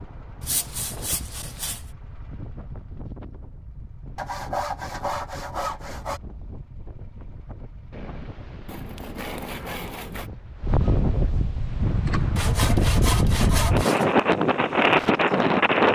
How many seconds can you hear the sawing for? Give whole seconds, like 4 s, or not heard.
7 s.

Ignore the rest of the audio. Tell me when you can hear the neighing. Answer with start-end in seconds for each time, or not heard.
7.9-9.8.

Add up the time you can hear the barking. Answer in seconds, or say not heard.
not heard.